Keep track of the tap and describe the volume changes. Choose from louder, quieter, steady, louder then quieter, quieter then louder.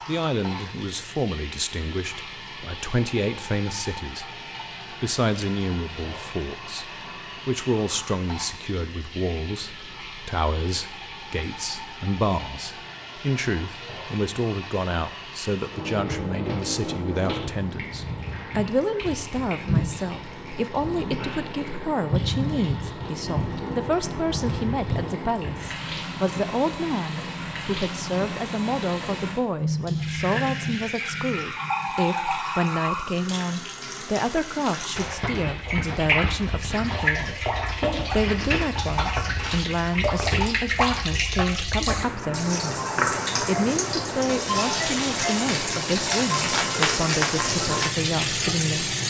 louder.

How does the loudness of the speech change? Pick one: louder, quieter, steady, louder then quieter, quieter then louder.
steady.